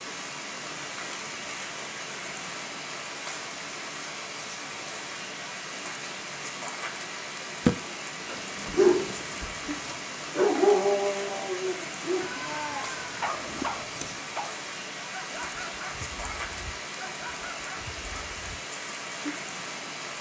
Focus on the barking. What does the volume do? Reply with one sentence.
The volume of the barking goes down.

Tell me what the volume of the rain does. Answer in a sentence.
The loudness of the rain stays about the same.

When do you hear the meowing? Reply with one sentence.
The meowing can be heard from 12.2 to 14.2 s.